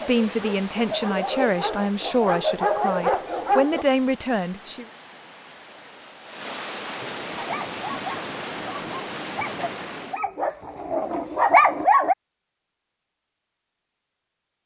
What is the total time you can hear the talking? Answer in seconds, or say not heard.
5 s.